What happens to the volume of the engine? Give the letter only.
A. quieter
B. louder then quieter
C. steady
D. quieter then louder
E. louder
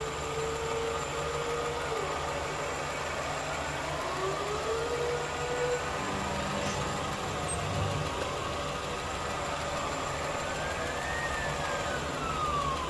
C.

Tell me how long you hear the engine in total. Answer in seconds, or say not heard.
13 s.